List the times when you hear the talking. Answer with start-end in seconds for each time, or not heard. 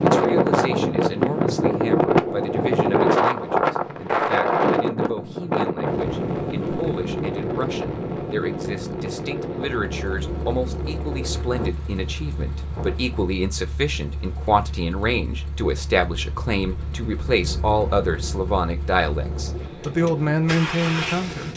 0.0-21.5.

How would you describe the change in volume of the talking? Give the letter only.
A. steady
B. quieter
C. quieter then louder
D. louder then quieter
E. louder
E.